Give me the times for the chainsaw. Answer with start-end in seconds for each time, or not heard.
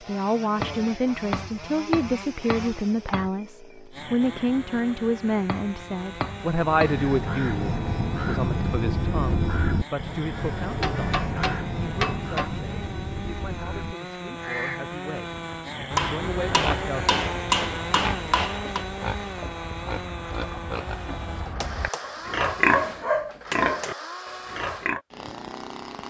0.0-26.0.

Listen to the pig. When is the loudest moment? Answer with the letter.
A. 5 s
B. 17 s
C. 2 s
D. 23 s
D.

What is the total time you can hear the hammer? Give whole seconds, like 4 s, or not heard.
10 s.